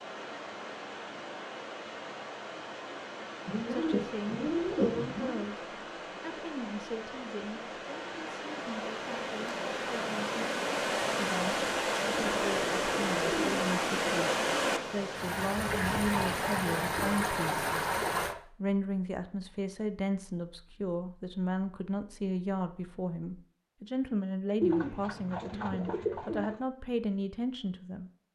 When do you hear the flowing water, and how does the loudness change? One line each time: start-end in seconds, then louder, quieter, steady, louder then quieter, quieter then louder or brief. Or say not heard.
0.0-18.4 louder.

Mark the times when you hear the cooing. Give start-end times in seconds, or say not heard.
3.5-5.5, 12.1-13.7, 24.6-26.6.